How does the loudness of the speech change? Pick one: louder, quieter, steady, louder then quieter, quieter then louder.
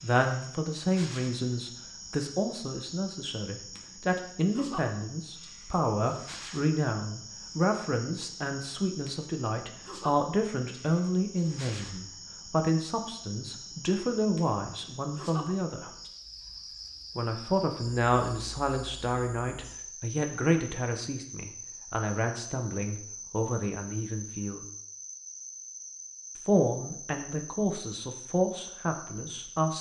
steady.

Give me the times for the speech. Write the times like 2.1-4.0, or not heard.
0.0-15.9, 17.1-24.6, 26.4-29.7.